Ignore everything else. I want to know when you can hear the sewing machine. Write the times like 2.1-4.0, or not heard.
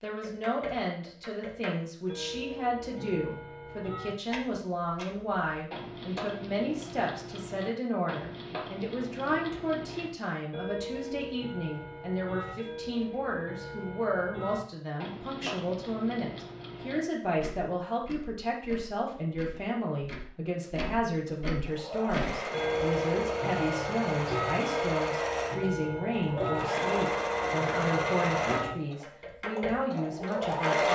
21.6-30.9.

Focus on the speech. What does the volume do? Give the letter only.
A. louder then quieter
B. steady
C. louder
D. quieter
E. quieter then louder
B.